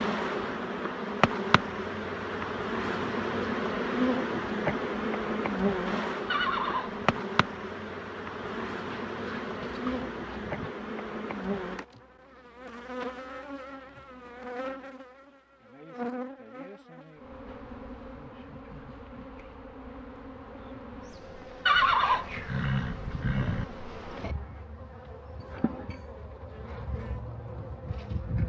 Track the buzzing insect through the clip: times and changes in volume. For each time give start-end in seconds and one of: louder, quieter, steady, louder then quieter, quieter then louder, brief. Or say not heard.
0.0-28.4 quieter.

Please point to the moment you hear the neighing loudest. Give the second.
22 s.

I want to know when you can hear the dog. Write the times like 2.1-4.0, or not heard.
8.8-10.7.